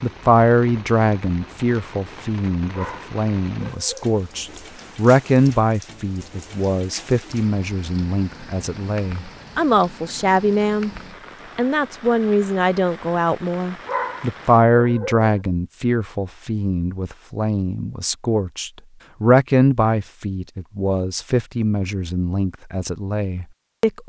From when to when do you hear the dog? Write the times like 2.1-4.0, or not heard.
2.7-4.2, 13.8-15.2.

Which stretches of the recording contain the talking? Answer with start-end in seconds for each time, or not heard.
0.0-10.9, 11.6-24.0.